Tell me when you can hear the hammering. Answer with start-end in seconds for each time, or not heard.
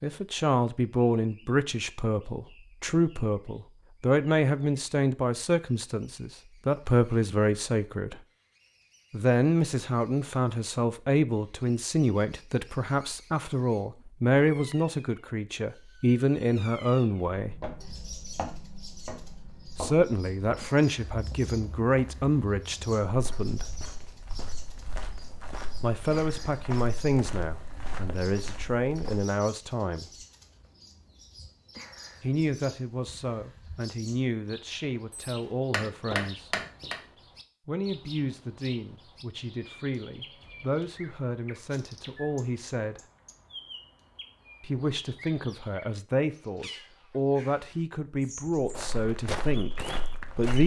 35.1-37.0.